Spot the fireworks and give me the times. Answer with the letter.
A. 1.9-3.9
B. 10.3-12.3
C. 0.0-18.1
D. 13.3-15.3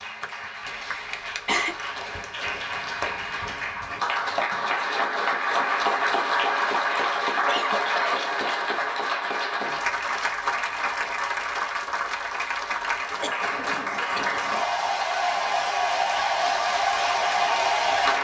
A.